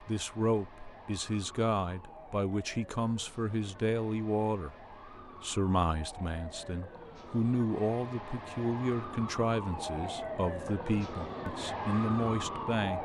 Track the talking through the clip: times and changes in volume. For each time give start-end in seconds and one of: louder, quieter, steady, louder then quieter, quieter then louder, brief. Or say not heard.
0.0-13.0 steady.